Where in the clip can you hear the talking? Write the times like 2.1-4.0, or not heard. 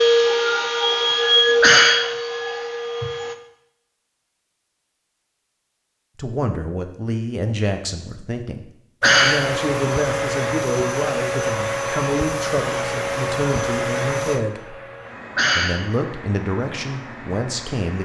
6.2-14.8, 15.6-18.0.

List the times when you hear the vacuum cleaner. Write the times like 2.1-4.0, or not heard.
0.0-3.4, 9.0-18.0.